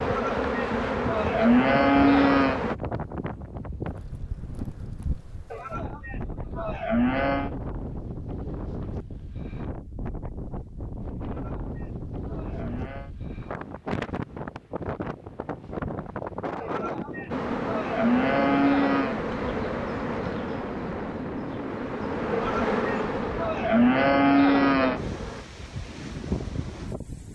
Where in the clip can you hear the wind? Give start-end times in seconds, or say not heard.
0.0-27.2.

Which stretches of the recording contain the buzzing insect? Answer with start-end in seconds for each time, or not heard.
0.0-2.8, 17.3-25.4.